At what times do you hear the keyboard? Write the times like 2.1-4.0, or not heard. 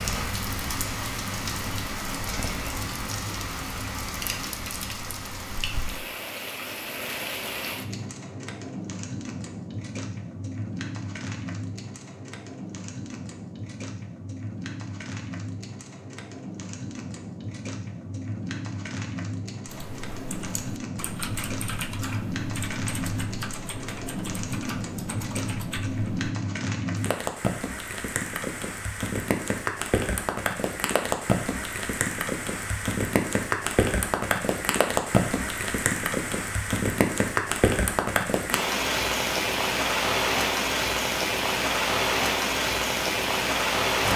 19.6-26.3.